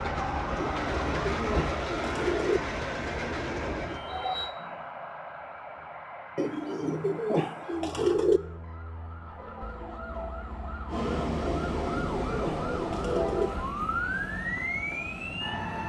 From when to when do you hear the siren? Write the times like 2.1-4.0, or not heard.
0.0-15.8.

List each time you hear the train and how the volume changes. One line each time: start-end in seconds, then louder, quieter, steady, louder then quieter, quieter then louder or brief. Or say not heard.
0.0-4.5 steady
10.8-15.8 quieter.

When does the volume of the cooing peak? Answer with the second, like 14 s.
8 s.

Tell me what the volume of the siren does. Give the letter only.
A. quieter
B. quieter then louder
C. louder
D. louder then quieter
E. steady
B.